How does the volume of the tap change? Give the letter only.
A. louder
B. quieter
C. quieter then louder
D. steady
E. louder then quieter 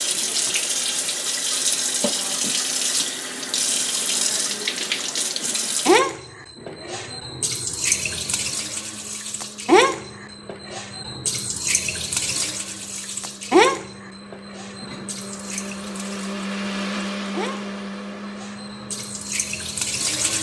B.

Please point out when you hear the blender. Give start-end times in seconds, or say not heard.
0.0-20.3.